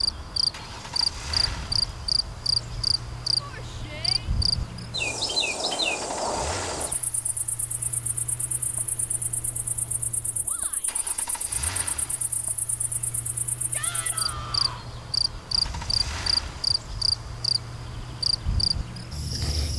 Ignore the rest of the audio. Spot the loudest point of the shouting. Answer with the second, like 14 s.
14 s.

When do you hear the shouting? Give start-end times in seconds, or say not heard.
3.4-4.3, 10.4-11.0, 13.7-14.8.